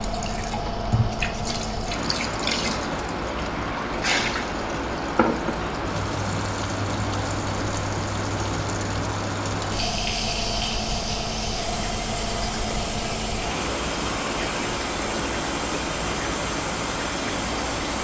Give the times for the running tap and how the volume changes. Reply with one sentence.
You can hear the running tap from 0.0 to 18.0 s, at a steady volume.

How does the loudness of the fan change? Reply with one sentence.
The loudness of the fan stays about the same.